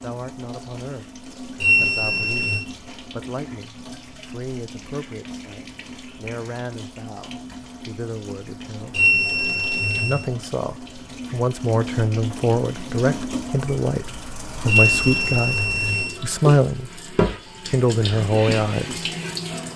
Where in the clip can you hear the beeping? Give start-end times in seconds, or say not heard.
1.6-2.6, 8.9-10.2, 14.7-16.1.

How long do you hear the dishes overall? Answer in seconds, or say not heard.
not heard.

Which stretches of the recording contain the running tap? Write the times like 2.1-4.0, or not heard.
0.0-19.7.